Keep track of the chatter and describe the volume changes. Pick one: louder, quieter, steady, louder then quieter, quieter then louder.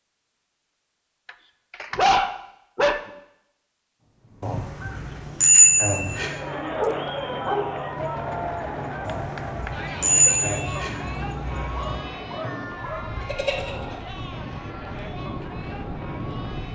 quieter.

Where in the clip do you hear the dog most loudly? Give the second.
2 s.